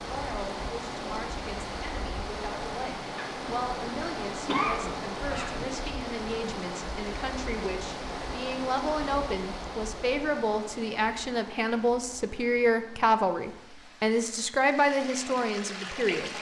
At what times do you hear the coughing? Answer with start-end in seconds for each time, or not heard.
3.1-5.7.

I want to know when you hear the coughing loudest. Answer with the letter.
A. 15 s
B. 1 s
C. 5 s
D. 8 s
C.